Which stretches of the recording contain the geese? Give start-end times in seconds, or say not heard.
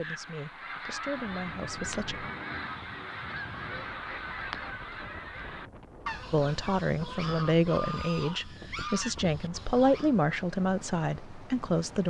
0.0-10.2.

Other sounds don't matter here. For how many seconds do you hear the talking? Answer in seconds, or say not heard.
8 s.